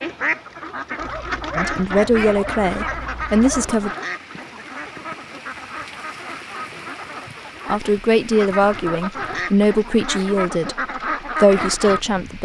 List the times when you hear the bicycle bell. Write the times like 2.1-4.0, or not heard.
not heard.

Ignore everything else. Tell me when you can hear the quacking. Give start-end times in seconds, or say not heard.
0.0-12.0.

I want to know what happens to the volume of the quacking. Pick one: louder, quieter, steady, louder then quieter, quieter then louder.
quieter then louder.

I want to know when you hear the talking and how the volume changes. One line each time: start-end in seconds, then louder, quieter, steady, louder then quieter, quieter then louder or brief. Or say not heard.
1.6-3.9 brief
7.7-12.4 quieter then louder.